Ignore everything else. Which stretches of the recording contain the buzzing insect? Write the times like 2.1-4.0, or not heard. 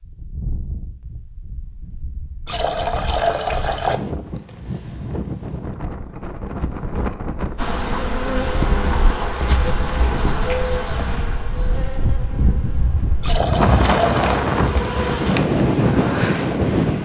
7.5-15.4.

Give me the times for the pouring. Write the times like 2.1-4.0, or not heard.
2.5-4.0, 13.2-14.4.